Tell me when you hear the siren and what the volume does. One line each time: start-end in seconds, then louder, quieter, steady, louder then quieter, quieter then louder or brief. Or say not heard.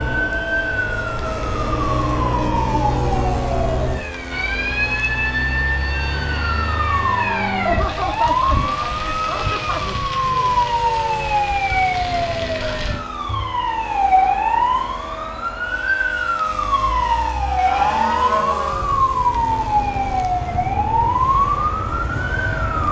0.0-22.8 steady.